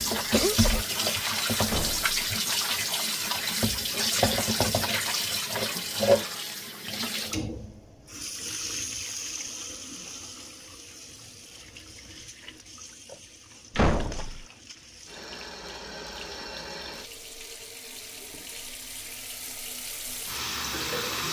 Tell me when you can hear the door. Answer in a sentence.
You can hear the door from 1.6 to 2.2 s and from 13.8 to 14.4 s.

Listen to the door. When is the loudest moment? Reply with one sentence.
The loudest moment of the door is at 14 seconds.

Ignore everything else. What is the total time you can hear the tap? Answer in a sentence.
You can hear the tap for 21 seconds altogether.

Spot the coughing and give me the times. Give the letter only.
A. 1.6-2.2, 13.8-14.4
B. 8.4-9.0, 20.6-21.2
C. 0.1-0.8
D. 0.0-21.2
C.